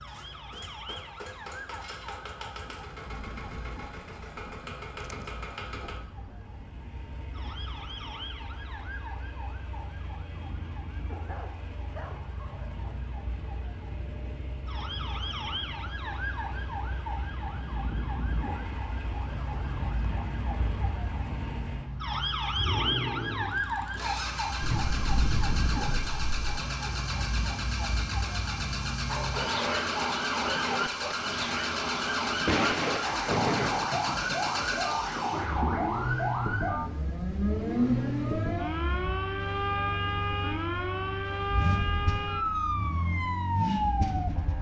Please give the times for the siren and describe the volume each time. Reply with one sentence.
The siren can be heard from 0.0 to 44.5 s, getting louder.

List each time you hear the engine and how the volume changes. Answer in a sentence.
The engine can be heard from 0.0 to 44.5 s, getting louder.